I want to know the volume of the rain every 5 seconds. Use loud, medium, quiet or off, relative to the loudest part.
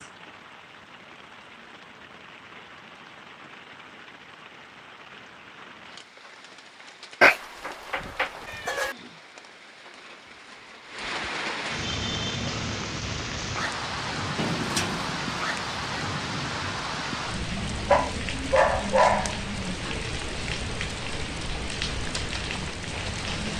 quiet, quiet, loud, loud, loud.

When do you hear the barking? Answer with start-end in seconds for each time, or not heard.
17.6-19.4.